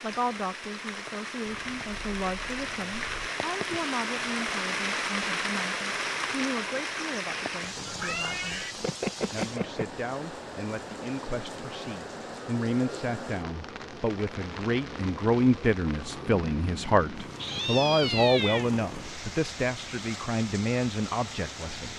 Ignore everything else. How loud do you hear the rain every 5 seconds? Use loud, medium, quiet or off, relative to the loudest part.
loud, loud, medium, medium, medium.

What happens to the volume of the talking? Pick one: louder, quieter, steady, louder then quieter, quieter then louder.
louder.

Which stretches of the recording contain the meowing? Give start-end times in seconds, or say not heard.
1.4-3.3, 7.8-9.8, 17.4-18.7.